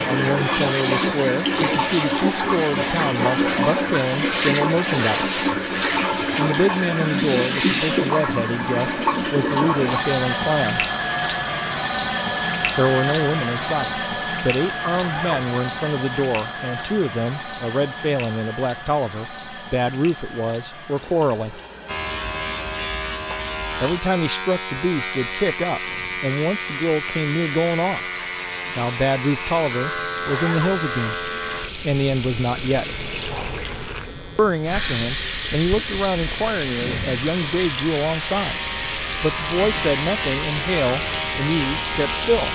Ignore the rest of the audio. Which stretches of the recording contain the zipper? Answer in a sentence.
The zipper can be heard from 14.9 to 15.5 s and from 30.2 to 30.8 s.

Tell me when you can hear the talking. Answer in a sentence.
You can hear the talking from 0.1 to 5.3 s, from 6.2 to 10.8 s, from 12.8 to 21.6 s, from 23.8 to 28.1 s, from 28.8 to 33.0 s and from 34.4 to 42.5 s.